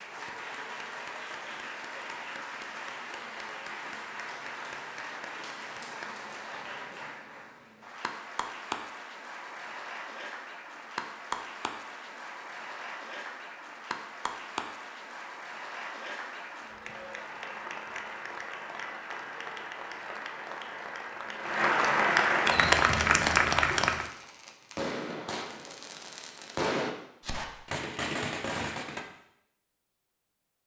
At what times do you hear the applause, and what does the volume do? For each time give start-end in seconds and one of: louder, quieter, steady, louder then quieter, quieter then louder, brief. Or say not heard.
0.0-24.1 louder.